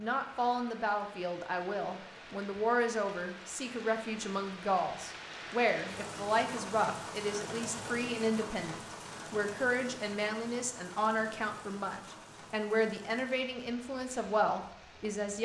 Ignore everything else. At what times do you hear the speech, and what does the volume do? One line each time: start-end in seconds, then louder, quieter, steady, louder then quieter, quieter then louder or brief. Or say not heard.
0.0-15.3 steady.